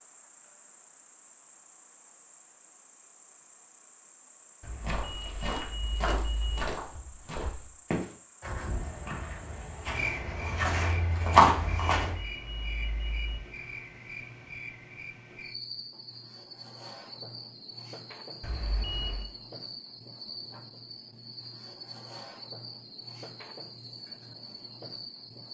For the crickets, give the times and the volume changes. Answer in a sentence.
You can hear the crickets from 0.0 to 25.4 s, getting louder.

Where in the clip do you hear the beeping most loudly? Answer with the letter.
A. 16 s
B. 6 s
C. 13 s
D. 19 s
D.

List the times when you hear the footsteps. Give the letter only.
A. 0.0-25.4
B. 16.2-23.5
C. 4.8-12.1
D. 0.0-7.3
C.